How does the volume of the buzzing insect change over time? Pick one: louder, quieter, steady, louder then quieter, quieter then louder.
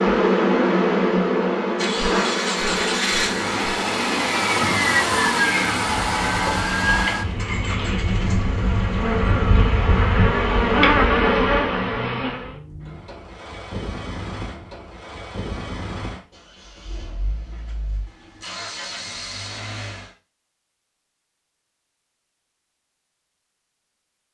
quieter then louder.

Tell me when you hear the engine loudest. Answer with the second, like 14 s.
5 s.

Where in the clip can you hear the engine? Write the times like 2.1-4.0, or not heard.
1.7-20.1.